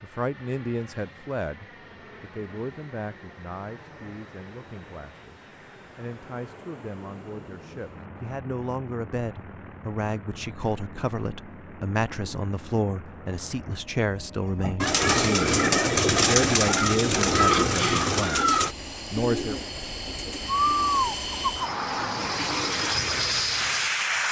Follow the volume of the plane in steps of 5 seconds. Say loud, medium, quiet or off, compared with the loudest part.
quiet, quiet, quiet, medium, loud.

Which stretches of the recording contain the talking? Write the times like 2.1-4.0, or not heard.
0.0-19.6.